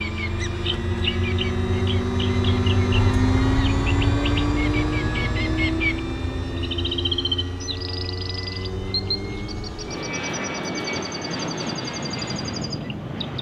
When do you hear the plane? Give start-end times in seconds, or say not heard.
0.0-13.3.